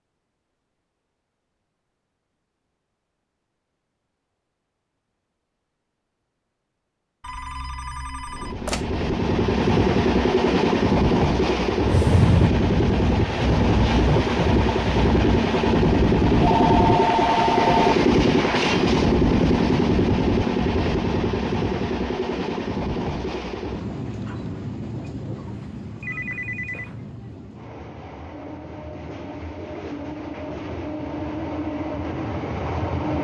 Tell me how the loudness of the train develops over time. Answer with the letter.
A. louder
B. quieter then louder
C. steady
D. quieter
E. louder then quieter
D.